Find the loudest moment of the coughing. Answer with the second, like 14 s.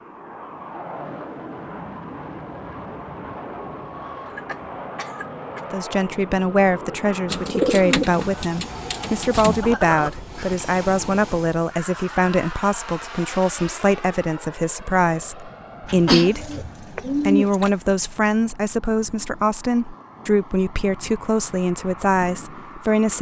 16 s.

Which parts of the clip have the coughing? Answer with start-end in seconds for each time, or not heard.
4.3-5.6, 9.4-10.7, 15.9-16.3.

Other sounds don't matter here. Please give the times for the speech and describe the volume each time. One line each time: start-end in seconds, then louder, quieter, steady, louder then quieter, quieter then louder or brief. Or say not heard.
5.7-23.1 steady.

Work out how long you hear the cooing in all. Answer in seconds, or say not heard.
4 s.